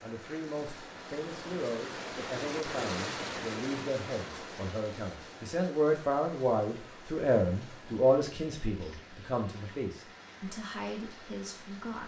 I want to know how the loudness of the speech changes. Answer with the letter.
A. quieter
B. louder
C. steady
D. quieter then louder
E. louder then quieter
E.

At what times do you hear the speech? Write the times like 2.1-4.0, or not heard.
0.0-12.0.